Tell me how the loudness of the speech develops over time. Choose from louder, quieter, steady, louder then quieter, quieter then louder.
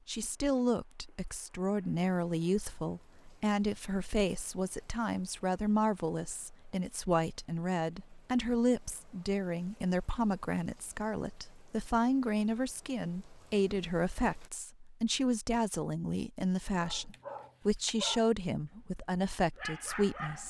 steady.